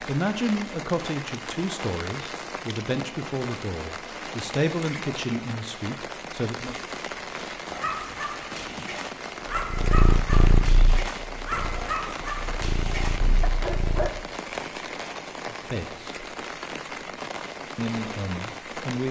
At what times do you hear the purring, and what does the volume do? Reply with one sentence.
You can hear the purring from 9.7 to 14.2 s, getting quieter then louder.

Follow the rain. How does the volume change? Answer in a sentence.
The volume of the rain stays about the same.